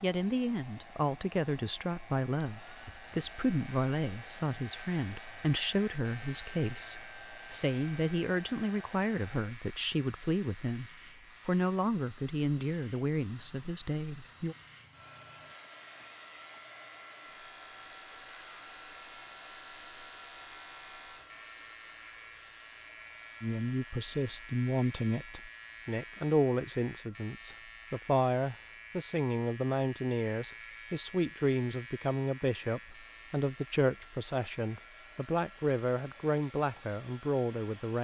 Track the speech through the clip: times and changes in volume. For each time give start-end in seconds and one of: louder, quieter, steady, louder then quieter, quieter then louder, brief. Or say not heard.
0.0-14.6 steady
23.4-38.0 steady.